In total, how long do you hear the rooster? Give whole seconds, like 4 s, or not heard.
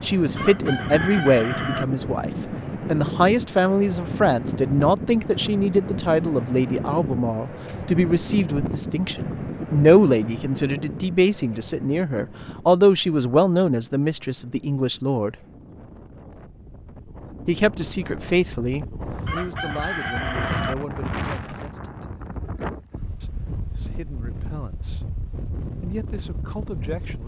3 s.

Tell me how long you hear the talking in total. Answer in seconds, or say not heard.
24 s.